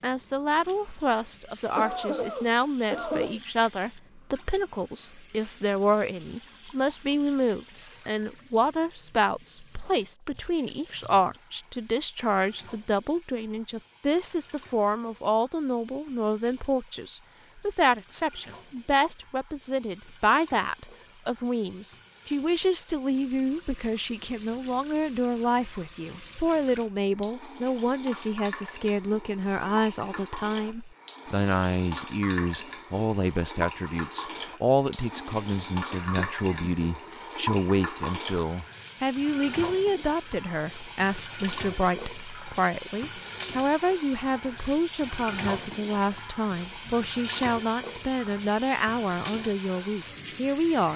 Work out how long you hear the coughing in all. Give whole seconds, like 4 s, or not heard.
3 s.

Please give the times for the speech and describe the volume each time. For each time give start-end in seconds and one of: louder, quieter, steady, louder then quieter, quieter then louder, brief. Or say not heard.
0.0-50.9 steady.